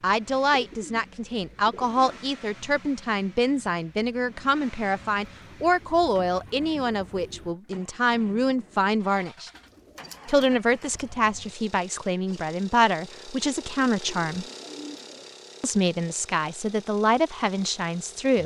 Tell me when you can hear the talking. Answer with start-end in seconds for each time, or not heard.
0.0-9.5, 10.2-14.4, 15.6-18.4.